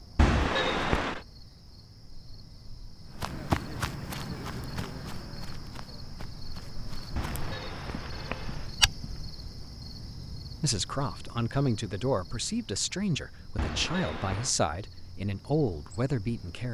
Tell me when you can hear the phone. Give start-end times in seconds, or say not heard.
0.1-1.2, 7.2-8.7, 13.6-14.6.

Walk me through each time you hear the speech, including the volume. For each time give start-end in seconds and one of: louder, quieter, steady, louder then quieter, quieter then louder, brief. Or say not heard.
10.6-16.6 steady.